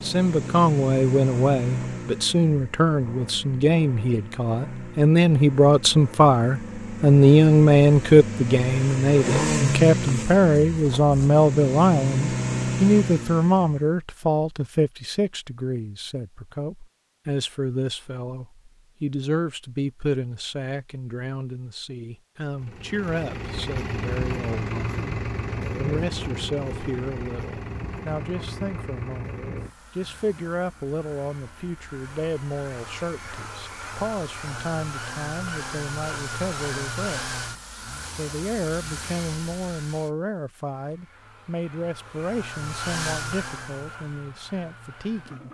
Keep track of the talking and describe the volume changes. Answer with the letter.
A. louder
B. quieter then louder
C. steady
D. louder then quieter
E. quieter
E.